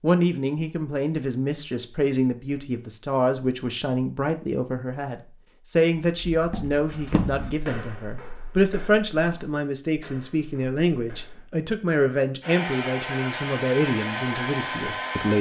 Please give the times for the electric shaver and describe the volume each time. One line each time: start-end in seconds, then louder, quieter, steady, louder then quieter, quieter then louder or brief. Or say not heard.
not heard.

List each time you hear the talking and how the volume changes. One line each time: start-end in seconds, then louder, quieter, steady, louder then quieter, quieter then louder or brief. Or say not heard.
0.0-15.3 steady.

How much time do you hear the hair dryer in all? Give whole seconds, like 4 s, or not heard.
3 s.